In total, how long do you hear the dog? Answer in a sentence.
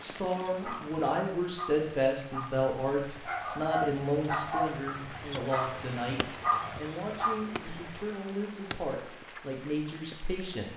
The dog can be heard for 8 seconds in total.